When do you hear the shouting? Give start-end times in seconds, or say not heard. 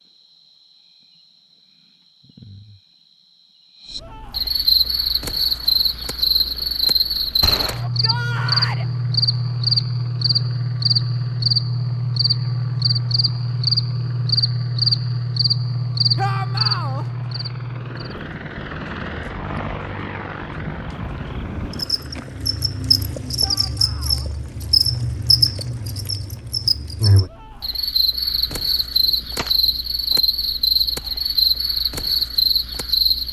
7.8-8.8, 16.1-17.1, 23.4-24.3.